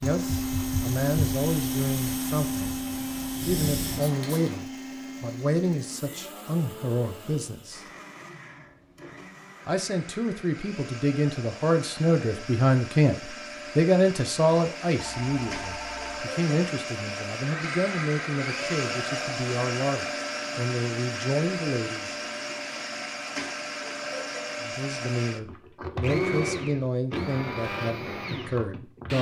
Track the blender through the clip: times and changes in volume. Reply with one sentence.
The blender can be heard from 0.0 to 29.1 s, getting quieter then louder.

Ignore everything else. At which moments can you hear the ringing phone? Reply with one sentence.
The ringing phone can be heard from 15.0 to 16.2 s.